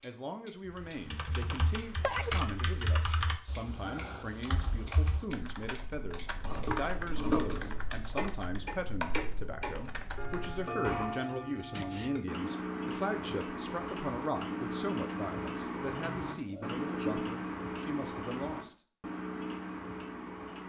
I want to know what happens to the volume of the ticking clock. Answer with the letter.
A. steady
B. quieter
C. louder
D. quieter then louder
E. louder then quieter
C.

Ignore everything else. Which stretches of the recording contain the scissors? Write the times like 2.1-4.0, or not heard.
6.4-7.8.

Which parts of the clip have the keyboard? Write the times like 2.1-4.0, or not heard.
0.7-11.2.